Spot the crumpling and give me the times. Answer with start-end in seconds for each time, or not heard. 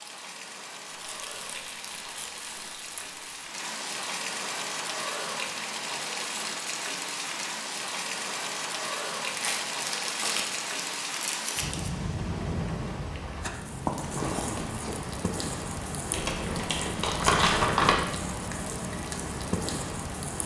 0.9-3.5, 9.2-11.9, 16.1-17.9.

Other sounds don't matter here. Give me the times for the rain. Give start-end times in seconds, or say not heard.
0.0-20.4.